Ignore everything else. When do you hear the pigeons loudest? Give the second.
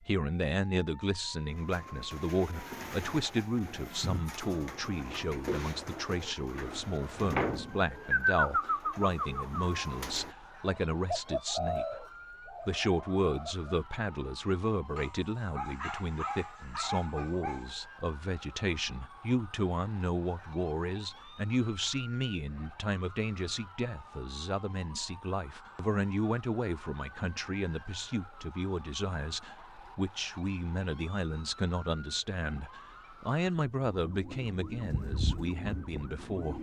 8 s.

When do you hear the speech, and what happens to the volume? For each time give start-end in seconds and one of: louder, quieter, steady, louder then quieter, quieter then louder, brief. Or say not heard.
0.0-36.5 steady.